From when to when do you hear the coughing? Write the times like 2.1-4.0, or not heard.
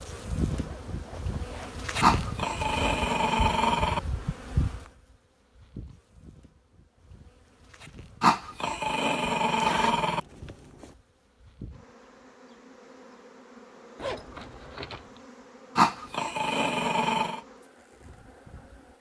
not heard.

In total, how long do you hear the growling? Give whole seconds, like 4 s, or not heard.
6 s.